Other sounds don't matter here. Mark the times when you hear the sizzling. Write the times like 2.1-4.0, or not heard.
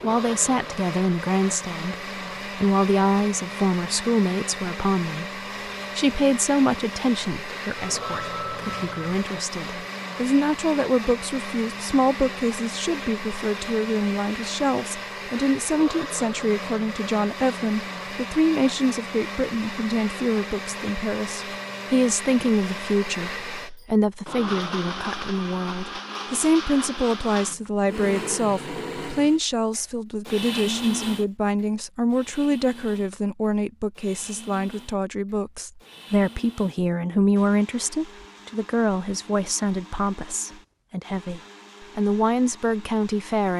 not heard.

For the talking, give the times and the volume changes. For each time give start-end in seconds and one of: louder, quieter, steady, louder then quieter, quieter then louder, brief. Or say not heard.
0.0-43.5 steady.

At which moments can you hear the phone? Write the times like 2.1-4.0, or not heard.
7.8-9.2.